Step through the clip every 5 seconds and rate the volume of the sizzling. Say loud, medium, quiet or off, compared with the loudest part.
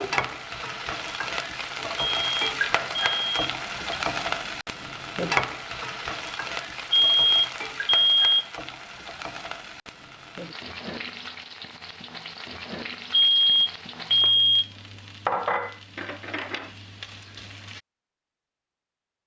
loud, loud, medium, loud.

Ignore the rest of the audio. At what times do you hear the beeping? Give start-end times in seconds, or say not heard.
1.9-4.0, 6.9-8.4, 13.1-14.7.